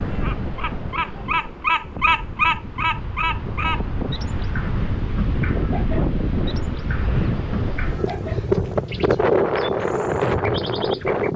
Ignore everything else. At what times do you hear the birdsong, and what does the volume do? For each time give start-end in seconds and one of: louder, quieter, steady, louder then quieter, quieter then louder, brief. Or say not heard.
0.0-11.3 quieter.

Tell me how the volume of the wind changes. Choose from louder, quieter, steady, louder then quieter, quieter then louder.
louder.